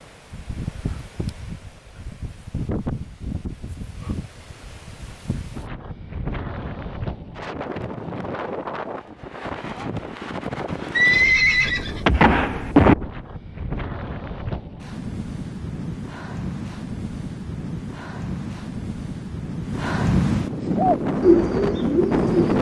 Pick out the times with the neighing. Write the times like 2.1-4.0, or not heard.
10.9-12.9.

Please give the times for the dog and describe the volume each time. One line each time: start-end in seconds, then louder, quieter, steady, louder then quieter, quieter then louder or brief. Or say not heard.
not heard.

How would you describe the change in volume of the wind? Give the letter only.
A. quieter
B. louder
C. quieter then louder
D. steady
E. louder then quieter
B.